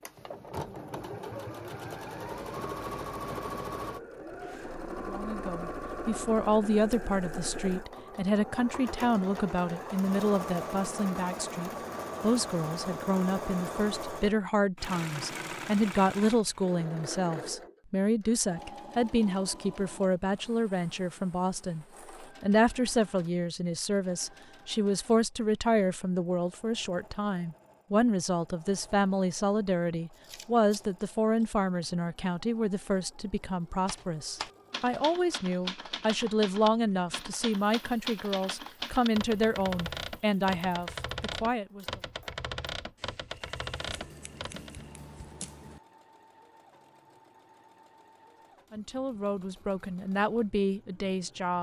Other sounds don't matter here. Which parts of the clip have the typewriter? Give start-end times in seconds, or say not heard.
33.9-44.9.